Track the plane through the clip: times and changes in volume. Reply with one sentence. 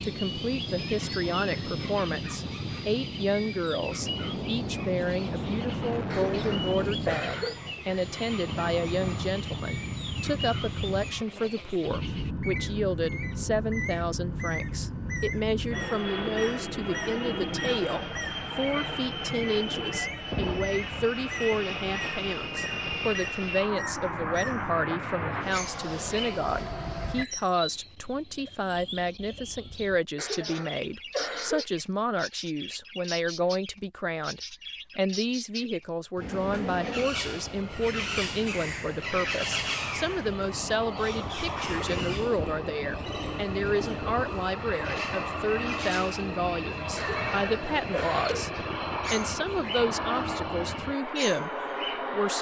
You can hear the plane from 0.0 to 27.2 s, at a steady volume; and from 36.2 to 52.3 s, getting louder.